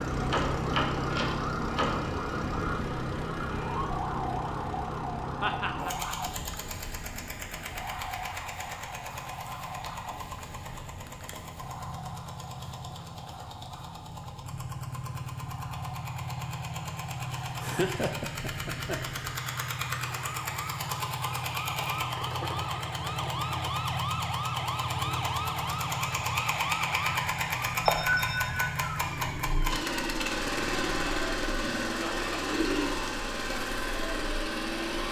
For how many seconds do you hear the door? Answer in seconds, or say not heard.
2 s.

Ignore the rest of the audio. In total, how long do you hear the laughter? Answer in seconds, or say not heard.
3 s.